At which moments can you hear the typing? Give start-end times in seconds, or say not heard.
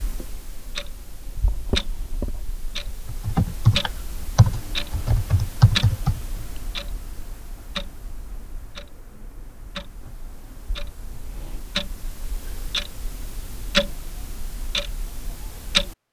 3.0-6.2.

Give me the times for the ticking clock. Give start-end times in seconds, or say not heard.
0.0-15.9.